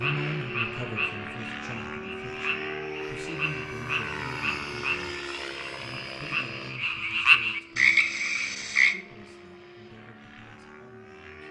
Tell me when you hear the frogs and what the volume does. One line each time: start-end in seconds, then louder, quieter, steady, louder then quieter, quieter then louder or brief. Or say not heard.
0.0-8.9 louder.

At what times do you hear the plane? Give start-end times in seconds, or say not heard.
0.0-11.4.